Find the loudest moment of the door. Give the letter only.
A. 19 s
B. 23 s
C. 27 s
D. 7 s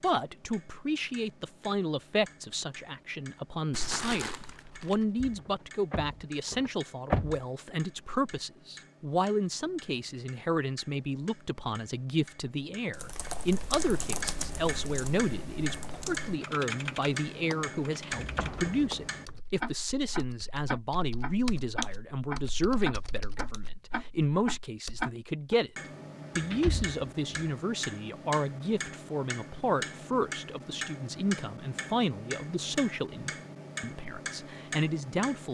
D.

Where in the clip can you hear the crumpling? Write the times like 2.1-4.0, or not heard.
3.7-5.0.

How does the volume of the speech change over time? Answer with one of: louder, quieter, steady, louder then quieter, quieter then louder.
steady.